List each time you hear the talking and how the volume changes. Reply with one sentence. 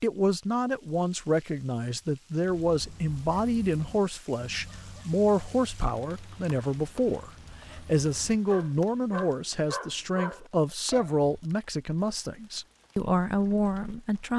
You can hear the talking from 0.0 to 14.3 s, at a steady volume.